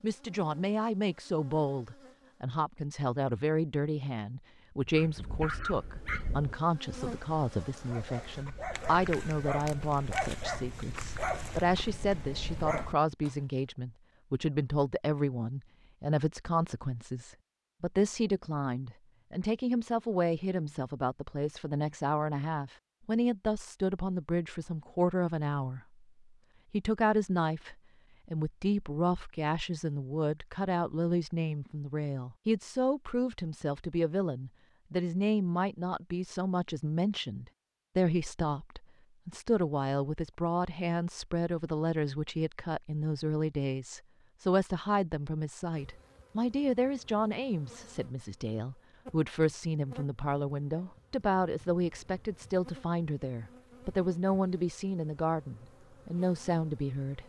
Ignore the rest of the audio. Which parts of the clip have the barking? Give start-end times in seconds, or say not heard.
4.8-13.3.